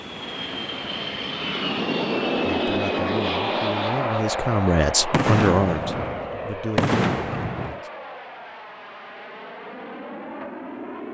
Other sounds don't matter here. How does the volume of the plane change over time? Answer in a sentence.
The volume of the plane goes down.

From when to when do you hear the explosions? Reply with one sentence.
You can hear the explosions from 5.1 to 7.8 s.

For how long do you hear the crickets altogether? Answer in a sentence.
You can't hear the crickets here.